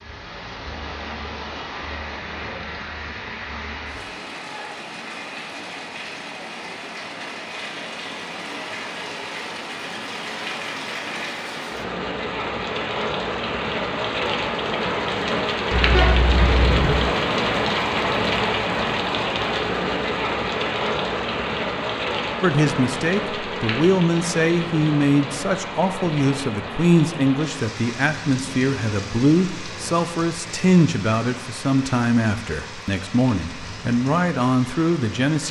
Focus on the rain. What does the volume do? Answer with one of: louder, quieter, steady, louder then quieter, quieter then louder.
louder then quieter.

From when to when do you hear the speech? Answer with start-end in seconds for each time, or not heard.
22.4-35.4.